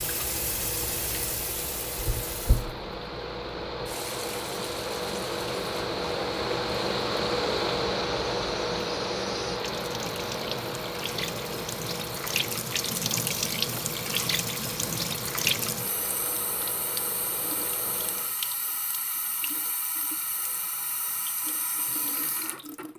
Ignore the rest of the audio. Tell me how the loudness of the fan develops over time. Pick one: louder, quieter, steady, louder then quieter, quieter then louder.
louder then quieter.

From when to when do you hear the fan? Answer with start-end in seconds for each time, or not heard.
0.0-18.4.